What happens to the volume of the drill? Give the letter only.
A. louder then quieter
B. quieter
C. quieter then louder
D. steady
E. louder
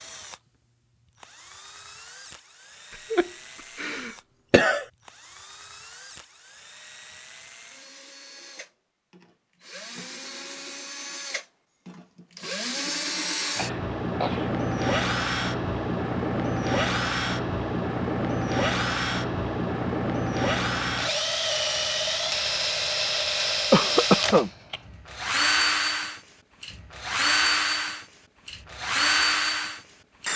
E.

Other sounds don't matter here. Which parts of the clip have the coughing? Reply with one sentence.
The coughing can be heard from 3.1 to 4.8 s, from 13.6 to 14.5 s and from 23.7 to 24.5 s.